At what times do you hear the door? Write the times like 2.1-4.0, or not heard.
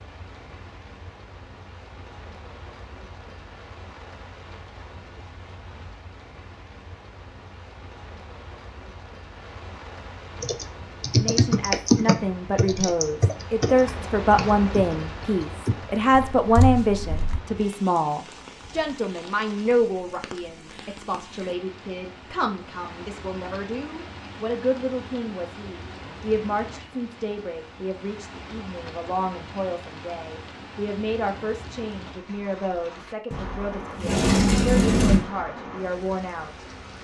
33.3-35.2.